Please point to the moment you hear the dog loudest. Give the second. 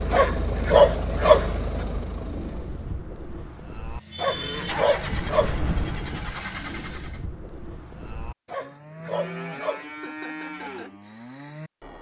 1 s.